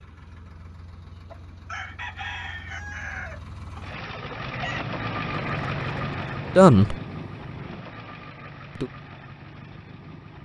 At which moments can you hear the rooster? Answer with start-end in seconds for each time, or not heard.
1.2-4.8.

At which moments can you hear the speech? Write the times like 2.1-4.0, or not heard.
6.5-7.0.